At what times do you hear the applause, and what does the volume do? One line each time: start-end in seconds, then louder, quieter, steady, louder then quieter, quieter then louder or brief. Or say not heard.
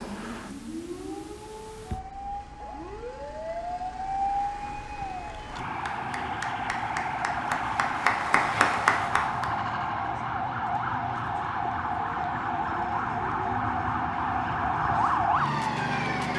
4.2-9.8 louder.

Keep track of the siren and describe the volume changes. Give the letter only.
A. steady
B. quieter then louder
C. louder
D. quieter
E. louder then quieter
C.